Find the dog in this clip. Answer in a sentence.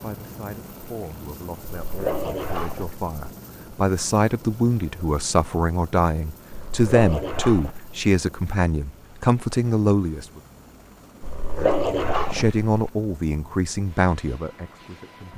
You can hear the dog from 1.7 to 3.0 s, from 6.5 to 8.0 s and from 11.2 to 12.9 s.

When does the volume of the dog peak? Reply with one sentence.
The loudest moment of the dog is at 12 seconds.